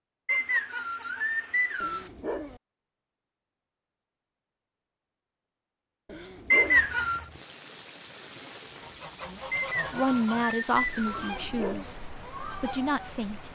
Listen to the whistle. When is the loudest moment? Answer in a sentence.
The volume of the whistle peaks at 7 seconds.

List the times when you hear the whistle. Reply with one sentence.
You can hear the whistle from 0.2 to 2.1 s, from 6.5 to 7.2 s and from 9.5 to 11.3 s.